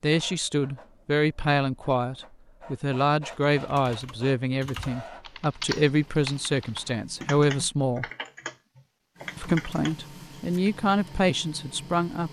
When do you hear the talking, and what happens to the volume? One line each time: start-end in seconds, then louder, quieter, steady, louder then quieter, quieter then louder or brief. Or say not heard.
0.0-8.1 steady
9.3-12.2 brief.